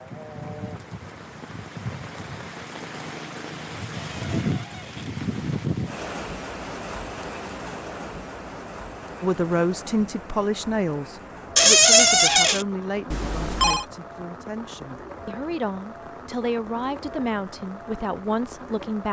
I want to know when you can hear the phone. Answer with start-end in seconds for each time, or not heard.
13.1-13.8.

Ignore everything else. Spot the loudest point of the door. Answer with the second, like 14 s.
12 s.